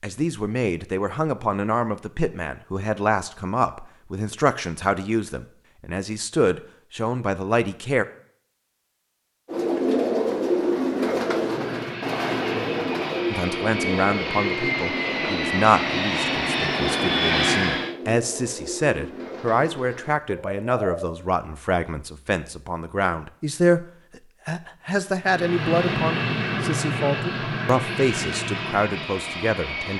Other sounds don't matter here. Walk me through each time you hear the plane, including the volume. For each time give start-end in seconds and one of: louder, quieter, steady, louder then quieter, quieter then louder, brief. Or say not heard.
11.3-17.9 louder
25.2-29.9 quieter.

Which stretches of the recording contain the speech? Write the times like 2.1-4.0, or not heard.
0.0-8.1, 13.3-23.9, 24.4-29.9.